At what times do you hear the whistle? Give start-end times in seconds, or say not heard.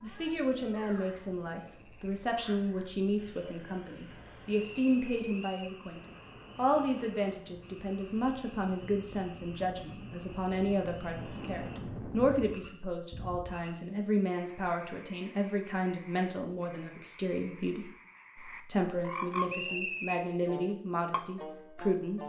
4.5-5.8, 19.4-20.2.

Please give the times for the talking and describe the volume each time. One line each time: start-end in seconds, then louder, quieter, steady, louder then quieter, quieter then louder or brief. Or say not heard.
0.0-22.2 steady.